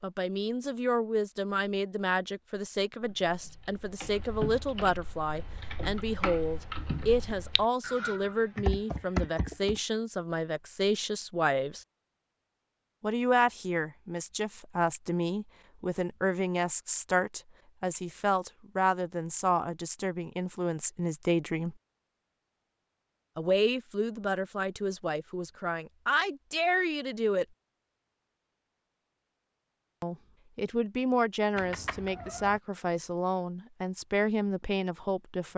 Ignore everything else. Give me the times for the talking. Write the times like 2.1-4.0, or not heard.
0.0-11.8, 13.0-21.8, 23.4-27.4, 30.0-35.5.